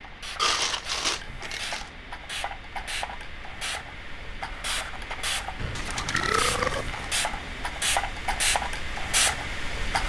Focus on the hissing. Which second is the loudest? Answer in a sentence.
The volume of the hissing peaks at 9 seconds.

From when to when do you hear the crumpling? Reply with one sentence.
The crumpling can be heard from 0.4 to 1.9 s and from 5.8 to 7.2 s.